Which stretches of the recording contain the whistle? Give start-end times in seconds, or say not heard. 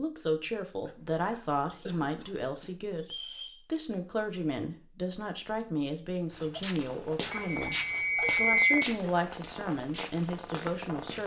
3.0-3.6, 7.3-8.8.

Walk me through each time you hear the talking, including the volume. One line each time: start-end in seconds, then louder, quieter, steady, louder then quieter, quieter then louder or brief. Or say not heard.
0.0-7.8 steady
8.3-11.2 brief.